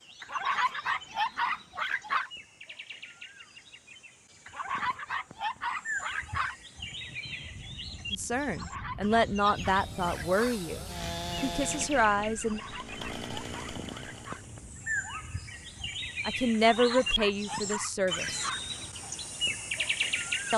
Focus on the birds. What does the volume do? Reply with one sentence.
The loudness of the birds goes up.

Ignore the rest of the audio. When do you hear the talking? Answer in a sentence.
The talking can be heard from 8.1 to 10.8 s, from 11.4 to 12.6 s and from 16.2 to 18.5 s.